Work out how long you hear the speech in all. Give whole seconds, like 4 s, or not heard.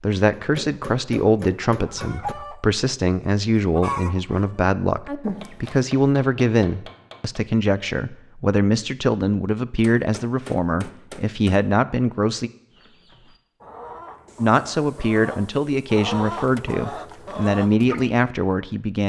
17 s.